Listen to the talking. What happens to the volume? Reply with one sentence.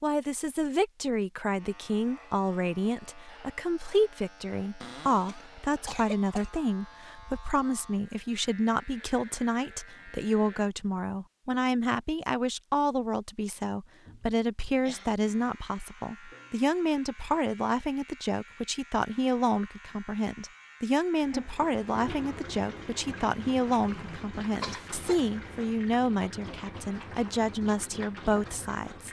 The volume of the talking stays about the same.